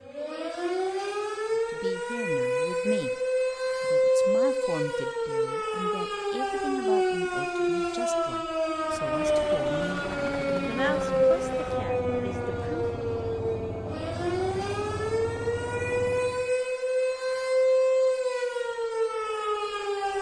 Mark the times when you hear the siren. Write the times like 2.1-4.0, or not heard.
0.0-20.1.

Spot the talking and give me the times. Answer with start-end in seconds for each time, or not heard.
1.5-3.2, 3.8-12.9.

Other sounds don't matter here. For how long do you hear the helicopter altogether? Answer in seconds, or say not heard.
8 s.